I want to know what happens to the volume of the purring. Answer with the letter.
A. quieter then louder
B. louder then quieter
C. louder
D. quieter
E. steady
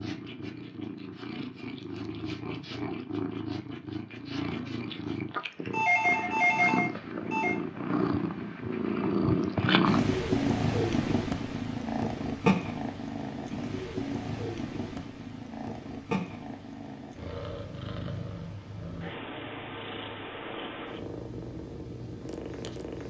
B.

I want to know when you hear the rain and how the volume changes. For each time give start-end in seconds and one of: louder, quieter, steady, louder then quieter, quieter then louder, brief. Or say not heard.
not heard.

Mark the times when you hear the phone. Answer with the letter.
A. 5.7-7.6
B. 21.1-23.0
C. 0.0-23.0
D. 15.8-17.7
A.